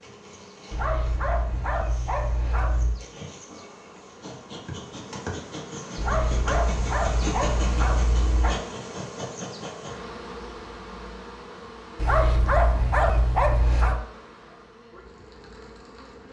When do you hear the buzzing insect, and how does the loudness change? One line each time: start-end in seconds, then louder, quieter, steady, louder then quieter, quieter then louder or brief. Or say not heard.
0.0-16.2 louder then quieter.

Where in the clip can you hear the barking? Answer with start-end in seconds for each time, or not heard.
0.7-3.0, 6.0-8.6, 11.9-14.0.